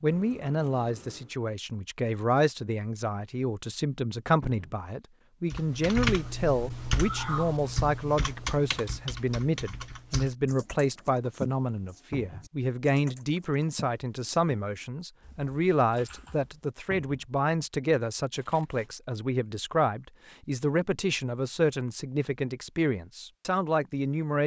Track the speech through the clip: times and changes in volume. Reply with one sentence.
You can hear the speech from 0.0 to 24.4 s, at a steady volume.